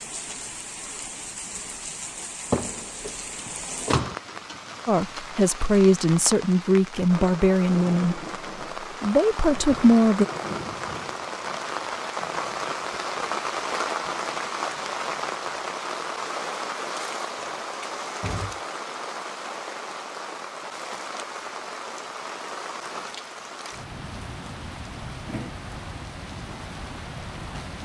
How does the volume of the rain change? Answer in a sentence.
The volume of the rain goes up, then down.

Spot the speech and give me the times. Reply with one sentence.
The speech can be heard from 4.8 to 8.2 s and from 8.8 to 10.2 s.